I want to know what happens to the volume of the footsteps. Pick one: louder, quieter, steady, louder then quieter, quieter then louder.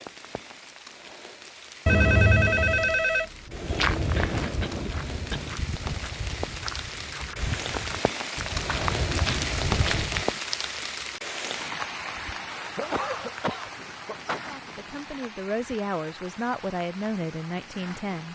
quieter then louder.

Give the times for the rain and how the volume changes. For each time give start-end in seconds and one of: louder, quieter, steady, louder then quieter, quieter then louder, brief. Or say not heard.
0.0-18.3 louder then quieter.